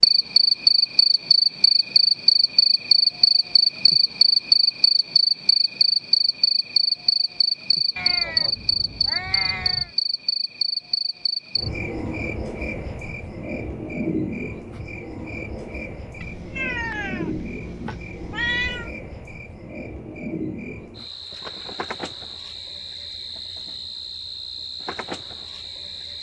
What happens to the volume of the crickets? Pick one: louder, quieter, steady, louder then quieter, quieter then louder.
quieter.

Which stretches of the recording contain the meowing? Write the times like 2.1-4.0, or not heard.
8.0-9.9, 16.2-18.9.